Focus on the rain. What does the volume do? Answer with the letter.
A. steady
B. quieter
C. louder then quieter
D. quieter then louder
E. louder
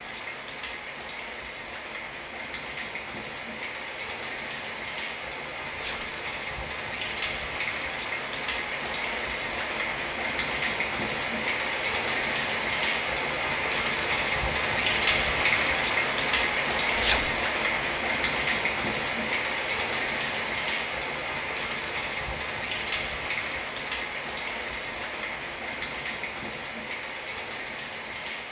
C.